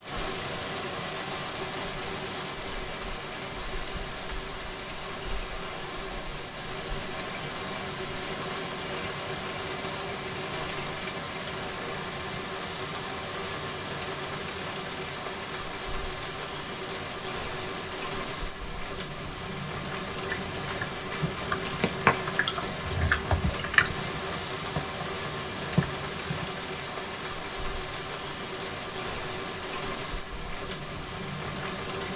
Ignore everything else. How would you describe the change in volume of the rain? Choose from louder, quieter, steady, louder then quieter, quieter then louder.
steady.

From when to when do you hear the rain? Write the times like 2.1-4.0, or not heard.
0.0-32.1.